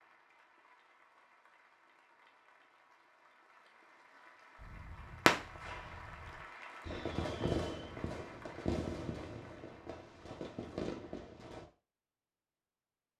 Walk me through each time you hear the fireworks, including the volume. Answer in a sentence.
You can hear the fireworks from 4.6 to 11.7 s, getting quieter.